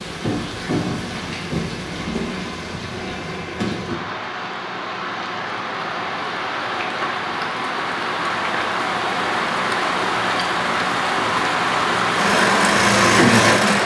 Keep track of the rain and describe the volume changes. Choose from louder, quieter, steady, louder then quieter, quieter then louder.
louder.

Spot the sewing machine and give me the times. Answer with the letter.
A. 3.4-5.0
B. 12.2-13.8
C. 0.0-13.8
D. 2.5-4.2
B.